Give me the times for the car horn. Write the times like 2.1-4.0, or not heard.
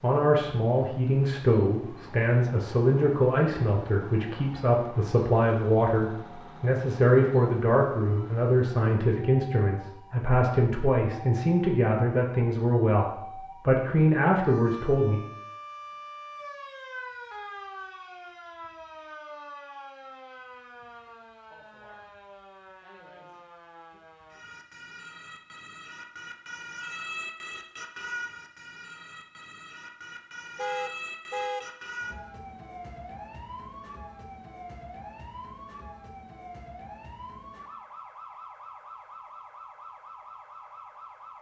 30.6-31.6.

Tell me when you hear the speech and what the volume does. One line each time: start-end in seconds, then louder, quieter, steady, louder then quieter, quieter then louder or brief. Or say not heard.
0.0-15.2 steady.